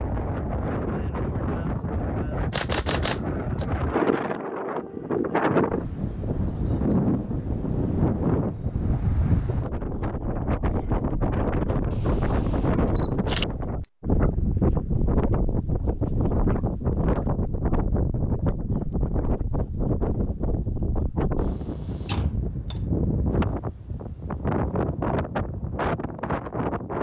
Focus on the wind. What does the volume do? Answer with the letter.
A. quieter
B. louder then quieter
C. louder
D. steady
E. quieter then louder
D.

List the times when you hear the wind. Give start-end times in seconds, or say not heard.
0.0-26.9.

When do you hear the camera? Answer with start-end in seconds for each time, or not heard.
2.5-3.6, 11.9-13.4, 21.4-22.8.